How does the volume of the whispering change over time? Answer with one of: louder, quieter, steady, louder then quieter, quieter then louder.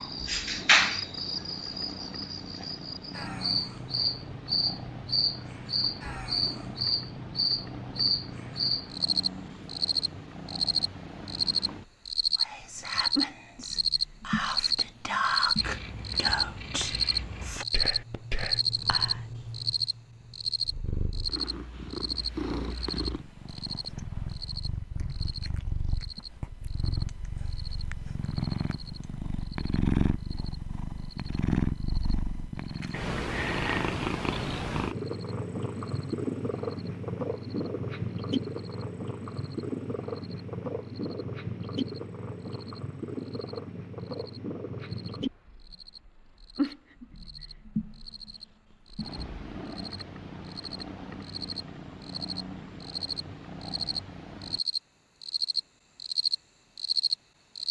louder then quieter.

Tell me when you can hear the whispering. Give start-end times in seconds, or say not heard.
12.3-19.2.